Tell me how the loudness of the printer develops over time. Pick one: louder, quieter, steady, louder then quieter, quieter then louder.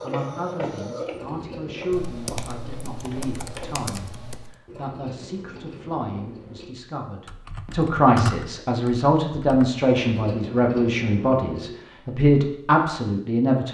quieter then louder.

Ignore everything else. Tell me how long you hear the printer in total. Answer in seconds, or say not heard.
4 s.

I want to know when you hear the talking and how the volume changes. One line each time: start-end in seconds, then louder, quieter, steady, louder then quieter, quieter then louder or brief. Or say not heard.
0.0-13.6 louder.